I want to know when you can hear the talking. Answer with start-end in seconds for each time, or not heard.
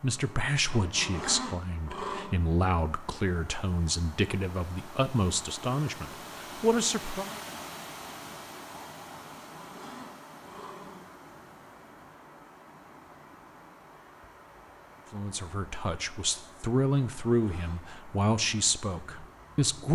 0.0-7.3, 15.1-19.9.